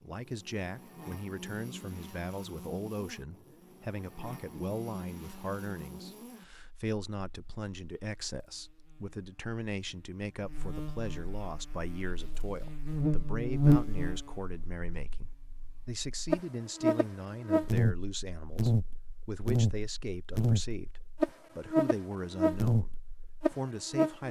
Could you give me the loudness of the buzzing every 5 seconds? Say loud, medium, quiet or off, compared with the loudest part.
quiet, quiet, loud, loud, loud.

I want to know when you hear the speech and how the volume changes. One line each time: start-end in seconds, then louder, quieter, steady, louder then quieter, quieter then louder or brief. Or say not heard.
0.0-24.2 steady.